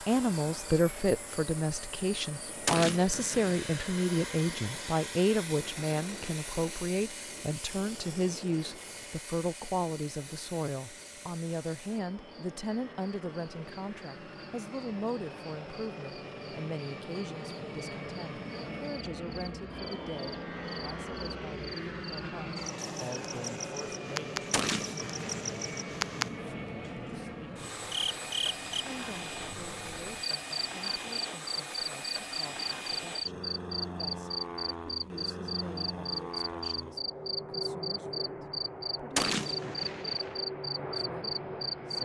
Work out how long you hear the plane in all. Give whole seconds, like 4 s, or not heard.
42 s.